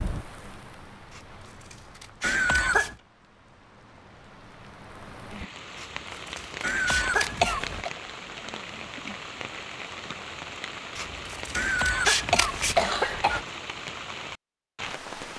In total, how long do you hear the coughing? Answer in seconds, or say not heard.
4 s.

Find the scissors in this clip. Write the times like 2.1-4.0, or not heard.
1.1-3.0, 5.8-7.5, 10.9-12.8.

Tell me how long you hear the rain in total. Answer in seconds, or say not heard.
15 s.